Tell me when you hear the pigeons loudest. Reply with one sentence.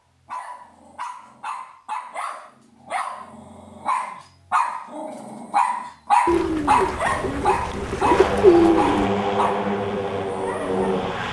The loudest moment of the pigeons is at 9 seconds.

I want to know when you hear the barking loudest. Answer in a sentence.
The loudest moment of the barking is at 6 seconds.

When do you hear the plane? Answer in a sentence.
The plane can be heard from 7.1 to 11.2 s.